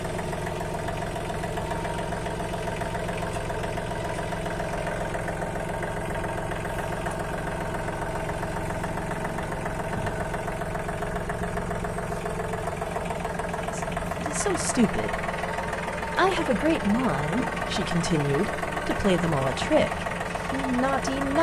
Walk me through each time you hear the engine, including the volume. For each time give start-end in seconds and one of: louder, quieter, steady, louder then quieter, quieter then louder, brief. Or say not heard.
0.0-21.3 steady.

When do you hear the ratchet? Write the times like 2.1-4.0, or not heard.
not heard.